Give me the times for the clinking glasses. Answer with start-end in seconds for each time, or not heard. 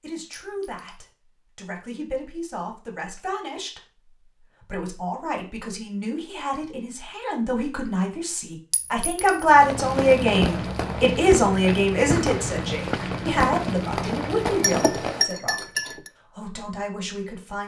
0.4-1.1, 8.7-9.5, 14.0-16.1.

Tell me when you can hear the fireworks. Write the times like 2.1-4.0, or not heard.
9.6-15.2.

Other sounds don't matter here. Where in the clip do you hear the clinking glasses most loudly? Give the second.
15 s.